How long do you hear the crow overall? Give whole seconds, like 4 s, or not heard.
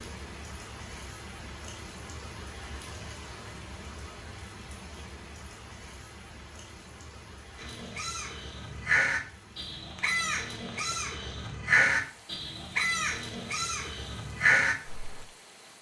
8 s.